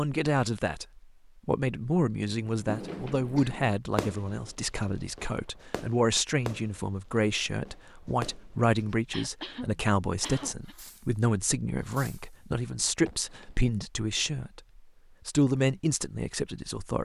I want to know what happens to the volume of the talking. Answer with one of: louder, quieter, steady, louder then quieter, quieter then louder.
steady.